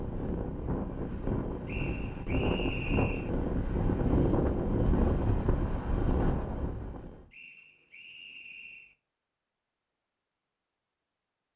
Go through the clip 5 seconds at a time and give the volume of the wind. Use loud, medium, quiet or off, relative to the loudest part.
loud, loud, off.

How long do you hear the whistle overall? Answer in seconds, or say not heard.
3 s.